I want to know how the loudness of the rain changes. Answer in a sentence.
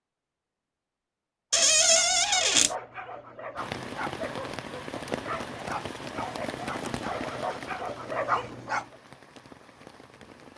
The volume of the rain goes down.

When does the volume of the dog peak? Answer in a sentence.
The volume of the dog peaks at 8 seconds.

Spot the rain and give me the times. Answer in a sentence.
You can hear the rain from 3.5 to 10.5 s.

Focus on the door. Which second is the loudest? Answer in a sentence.
The volume of the door peaks at 2 seconds.